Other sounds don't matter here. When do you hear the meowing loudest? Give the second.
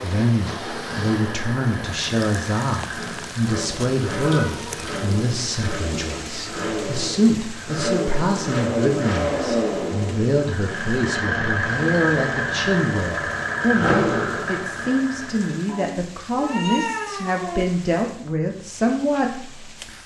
17 s.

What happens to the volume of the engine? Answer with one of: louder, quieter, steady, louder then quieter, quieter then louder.
louder.